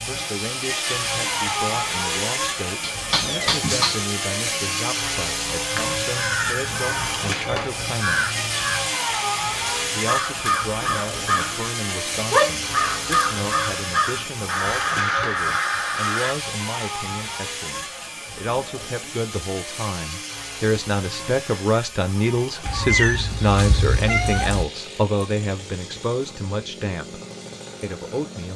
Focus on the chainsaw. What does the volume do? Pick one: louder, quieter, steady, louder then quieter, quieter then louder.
quieter.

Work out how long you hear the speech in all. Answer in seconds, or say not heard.
26 s.